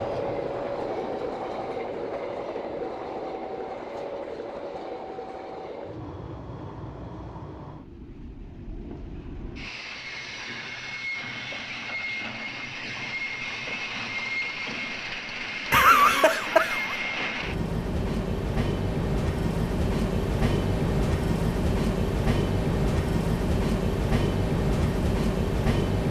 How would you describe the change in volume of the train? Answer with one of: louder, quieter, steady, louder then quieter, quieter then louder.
quieter then louder.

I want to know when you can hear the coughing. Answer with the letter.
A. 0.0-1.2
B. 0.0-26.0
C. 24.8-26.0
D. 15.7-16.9
D.